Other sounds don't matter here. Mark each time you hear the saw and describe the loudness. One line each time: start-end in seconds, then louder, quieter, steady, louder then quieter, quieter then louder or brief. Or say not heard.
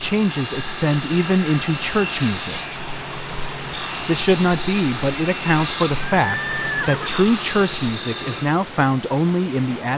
0.0-8.5 steady.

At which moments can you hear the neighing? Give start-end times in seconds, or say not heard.
6.2-7.3.